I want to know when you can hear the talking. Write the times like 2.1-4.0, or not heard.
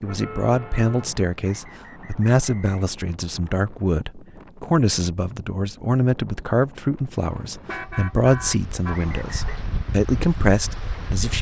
0.0-11.3.